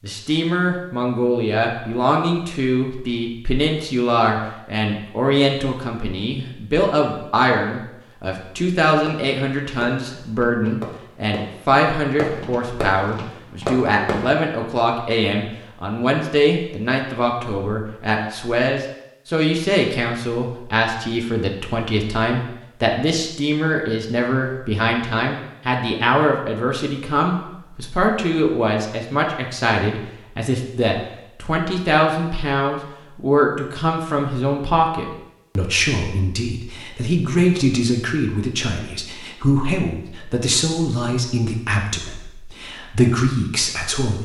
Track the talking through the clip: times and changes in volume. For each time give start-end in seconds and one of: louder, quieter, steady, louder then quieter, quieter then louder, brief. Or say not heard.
0.0-44.2 steady.